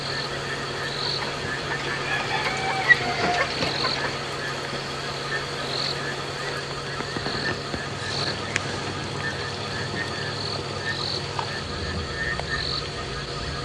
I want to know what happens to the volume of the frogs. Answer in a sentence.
The loudness of the frogs stays about the same.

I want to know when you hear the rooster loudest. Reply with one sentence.
The volume of the rooster peaks at 3 seconds.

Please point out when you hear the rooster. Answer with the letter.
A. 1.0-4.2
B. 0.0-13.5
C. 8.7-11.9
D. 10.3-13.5
A.